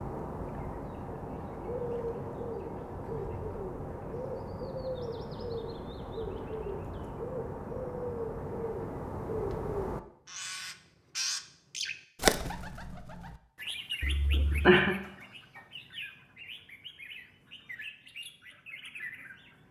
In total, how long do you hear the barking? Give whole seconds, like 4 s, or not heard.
not heard.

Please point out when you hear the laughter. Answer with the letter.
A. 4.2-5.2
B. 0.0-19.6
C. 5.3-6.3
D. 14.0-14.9
D.